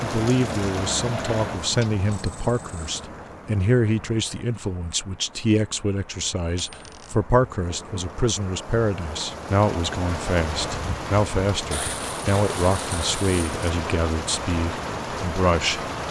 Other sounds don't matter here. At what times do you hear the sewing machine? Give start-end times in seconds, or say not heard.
0.2-1.6.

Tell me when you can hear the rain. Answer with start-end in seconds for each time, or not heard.
0.0-16.0.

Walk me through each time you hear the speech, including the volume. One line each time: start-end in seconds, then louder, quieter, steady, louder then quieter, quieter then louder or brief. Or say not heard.
0.0-15.8 steady.